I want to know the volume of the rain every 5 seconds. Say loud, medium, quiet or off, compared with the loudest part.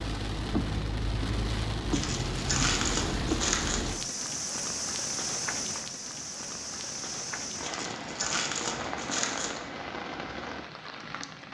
loud, loud, medium.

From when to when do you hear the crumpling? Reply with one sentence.
The crumpling can be heard from 1.9 to 3.9 s and from 7.6 to 9.6 s.